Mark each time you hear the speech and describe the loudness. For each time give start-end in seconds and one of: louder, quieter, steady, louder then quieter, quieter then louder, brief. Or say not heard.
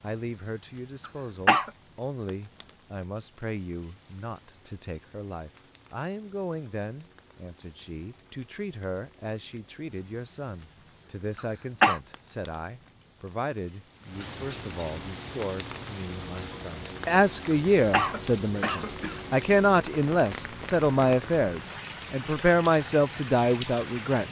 0.0-24.2 louder.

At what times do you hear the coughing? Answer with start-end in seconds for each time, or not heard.
1.1-1.7, 11.3-12.0, 17.5-19.2.